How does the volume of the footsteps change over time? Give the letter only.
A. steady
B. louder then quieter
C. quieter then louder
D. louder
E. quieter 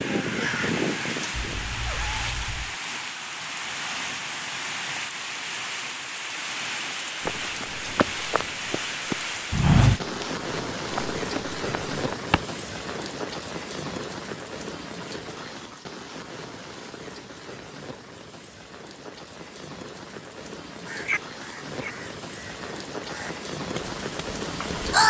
B.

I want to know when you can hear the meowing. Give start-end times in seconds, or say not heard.
1.4-2.8.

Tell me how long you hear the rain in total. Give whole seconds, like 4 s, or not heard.
25 s.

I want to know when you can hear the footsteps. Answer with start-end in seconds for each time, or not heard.
7.2-12.4.